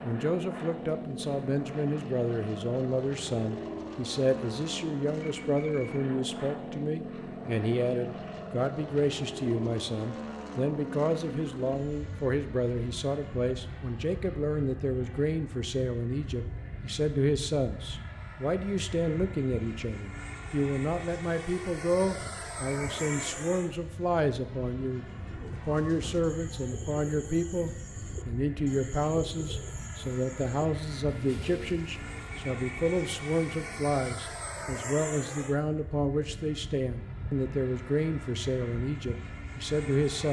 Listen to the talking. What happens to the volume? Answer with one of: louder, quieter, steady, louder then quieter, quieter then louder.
steady.